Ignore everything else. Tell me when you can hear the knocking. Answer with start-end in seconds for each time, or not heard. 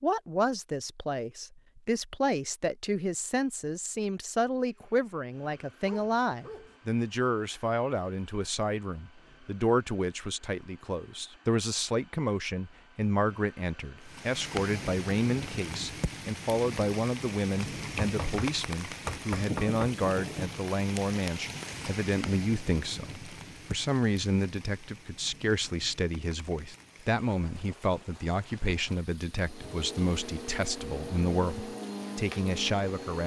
17.9-19.9.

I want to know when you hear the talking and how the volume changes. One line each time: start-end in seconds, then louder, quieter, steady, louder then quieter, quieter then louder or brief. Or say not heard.
0.0-33.2 steady.